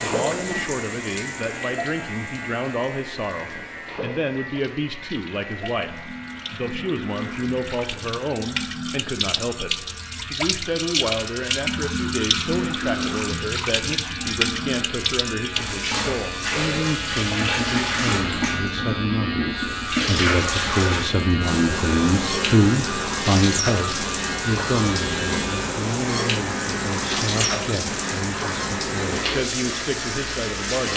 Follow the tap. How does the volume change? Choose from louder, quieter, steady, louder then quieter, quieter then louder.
louder.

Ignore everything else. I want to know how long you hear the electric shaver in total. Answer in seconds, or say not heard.
31 s.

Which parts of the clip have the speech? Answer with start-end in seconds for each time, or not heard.
0.0-30.9.